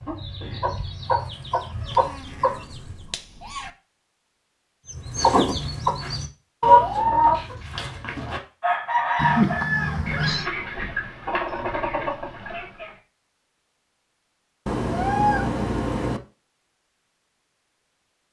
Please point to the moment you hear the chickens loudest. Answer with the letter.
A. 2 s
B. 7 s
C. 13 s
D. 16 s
B.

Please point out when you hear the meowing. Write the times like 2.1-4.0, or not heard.
1.7-3.7, 9.2-10.4, 14.7-16.2.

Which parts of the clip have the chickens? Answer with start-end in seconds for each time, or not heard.
0.0-3.0, 4.8-12.9.